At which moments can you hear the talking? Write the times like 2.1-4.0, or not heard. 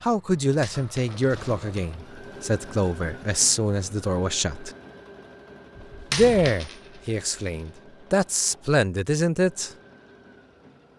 0.0-4.7, 6.1-9.7.